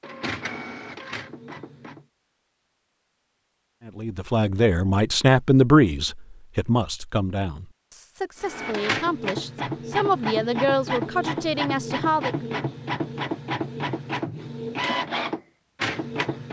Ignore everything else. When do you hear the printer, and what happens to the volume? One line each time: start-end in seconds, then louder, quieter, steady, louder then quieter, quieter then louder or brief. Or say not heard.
0.0-2.0 brief
8.4-16.4 steady.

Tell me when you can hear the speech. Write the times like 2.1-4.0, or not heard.
3.9-12.3.